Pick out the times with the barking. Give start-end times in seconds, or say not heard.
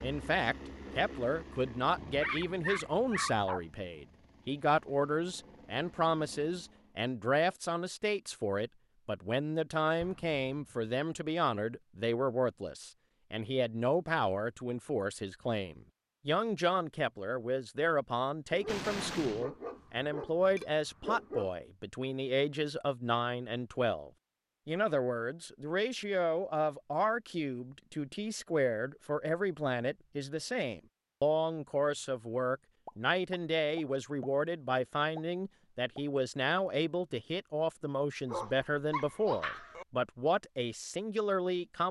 1.9-3.6, 18.5-21.5, 38.2-39.9.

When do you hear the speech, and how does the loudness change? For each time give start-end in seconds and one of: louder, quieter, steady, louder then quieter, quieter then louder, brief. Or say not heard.
0.0-41.8 steady.